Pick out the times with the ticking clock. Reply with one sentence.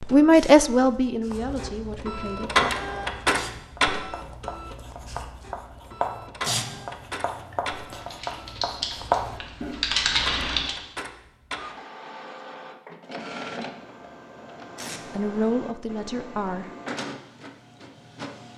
The ticking clock can't be heard in this clip.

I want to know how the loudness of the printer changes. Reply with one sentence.
The volume of the printer goes down.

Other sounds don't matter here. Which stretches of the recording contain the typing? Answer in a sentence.
The typing can be heard from 7.2 to 10.8 s.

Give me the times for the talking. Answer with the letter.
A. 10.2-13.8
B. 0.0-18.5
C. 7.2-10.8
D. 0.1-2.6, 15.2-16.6
D.